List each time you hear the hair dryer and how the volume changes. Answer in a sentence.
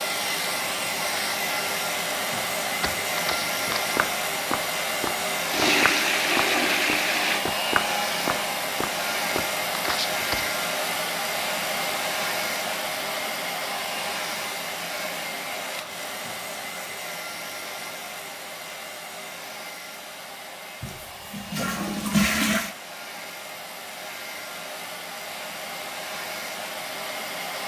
You can hear the hair dryer from 0.0 to 27.6 s, getting quieter.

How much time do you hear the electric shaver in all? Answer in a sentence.
You can't hear the electric shaver here.